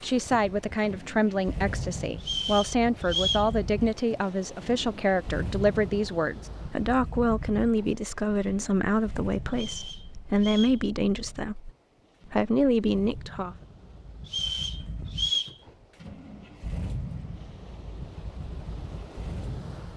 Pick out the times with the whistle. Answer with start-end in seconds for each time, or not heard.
2.2-3.5, 9.5-10.8, 14.2-15.6.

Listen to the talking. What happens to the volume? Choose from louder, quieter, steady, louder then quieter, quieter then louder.
steady.